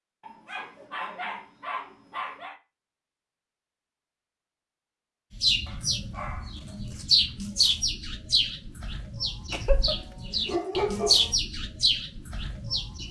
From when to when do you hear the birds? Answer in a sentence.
You can hear the birds from 5.3 to 13.0 s.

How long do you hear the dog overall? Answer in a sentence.
The dog can be heard for 5 seconds in total.